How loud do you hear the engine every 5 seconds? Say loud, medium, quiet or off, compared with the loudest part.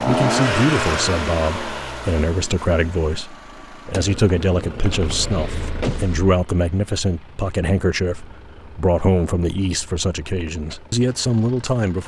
loud, medium, quiet.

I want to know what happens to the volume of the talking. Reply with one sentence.
The loudness of the talking stays about the same.